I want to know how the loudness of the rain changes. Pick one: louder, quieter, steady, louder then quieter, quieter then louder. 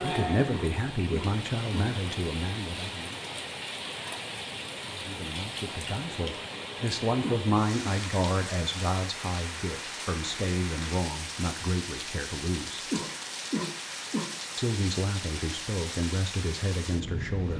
steady.